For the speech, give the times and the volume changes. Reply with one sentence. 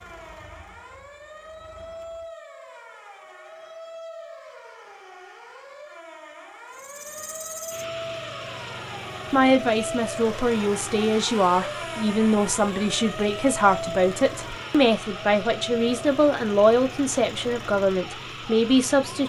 The speech can be heard from 9.3 to 19.2 s, at a steady volume.